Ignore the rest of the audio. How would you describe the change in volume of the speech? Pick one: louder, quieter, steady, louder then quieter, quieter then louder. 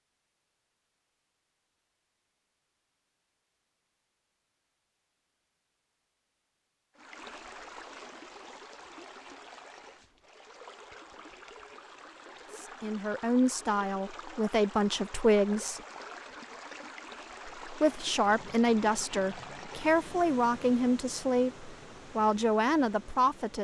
steady.